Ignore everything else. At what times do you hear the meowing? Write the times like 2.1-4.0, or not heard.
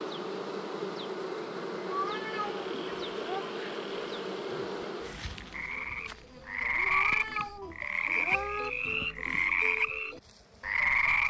1.9-3.5, 6.7-8.7.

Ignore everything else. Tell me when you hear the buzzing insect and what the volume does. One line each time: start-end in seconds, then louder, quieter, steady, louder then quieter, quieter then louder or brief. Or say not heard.
0.0-11.2 quieter.